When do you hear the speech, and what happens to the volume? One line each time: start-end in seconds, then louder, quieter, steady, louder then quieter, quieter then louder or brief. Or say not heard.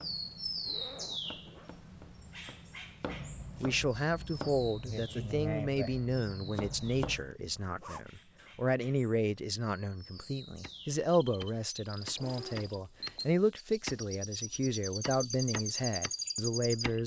3.6-17.0 steady.